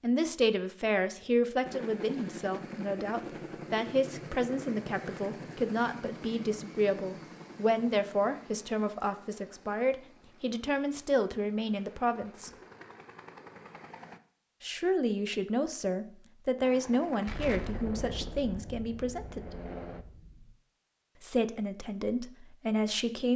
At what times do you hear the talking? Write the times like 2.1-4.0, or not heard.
0.0-12.5, 14.6-19.6, 21.2-23.3.